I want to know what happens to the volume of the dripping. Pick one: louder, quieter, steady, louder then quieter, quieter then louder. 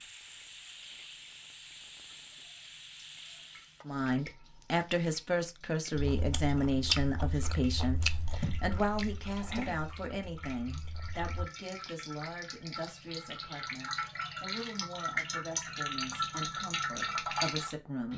louder.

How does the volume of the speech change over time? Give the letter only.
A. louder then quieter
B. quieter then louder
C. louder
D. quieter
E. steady
D.